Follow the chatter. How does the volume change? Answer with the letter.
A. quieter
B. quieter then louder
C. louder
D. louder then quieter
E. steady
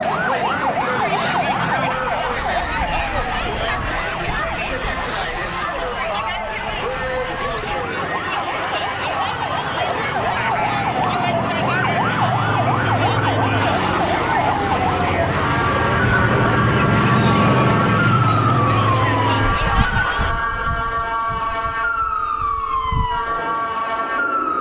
E.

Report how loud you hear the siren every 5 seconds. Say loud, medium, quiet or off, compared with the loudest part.
loud, medium, loud, loud, loud.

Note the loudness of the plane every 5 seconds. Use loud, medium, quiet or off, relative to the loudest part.
quiet, quiet, medium, loud, quiet.